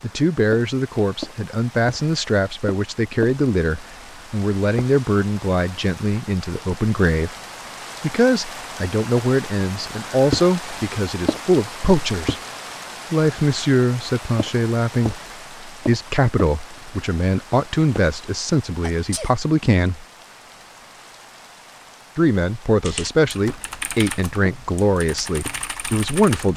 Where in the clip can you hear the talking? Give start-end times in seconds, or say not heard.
0.0-7.3, 8.0-12.3, 13.1-20.1, 22.1-26.5.